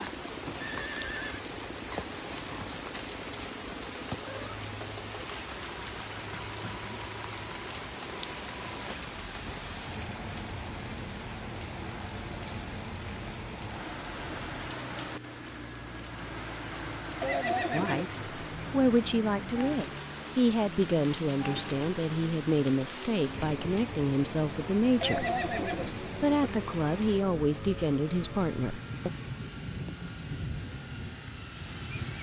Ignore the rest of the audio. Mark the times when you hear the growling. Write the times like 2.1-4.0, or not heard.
not heard.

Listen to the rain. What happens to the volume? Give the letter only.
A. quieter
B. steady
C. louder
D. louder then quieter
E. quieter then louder
B.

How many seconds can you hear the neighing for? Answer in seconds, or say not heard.
3 s.